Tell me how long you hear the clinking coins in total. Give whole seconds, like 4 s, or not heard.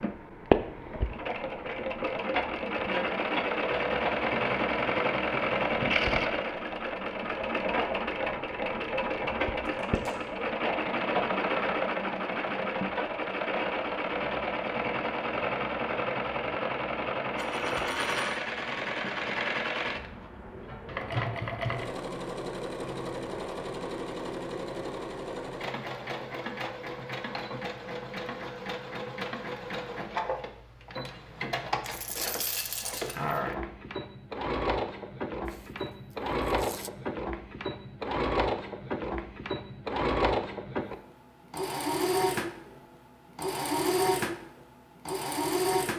3 s.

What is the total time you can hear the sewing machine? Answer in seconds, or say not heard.
46 s.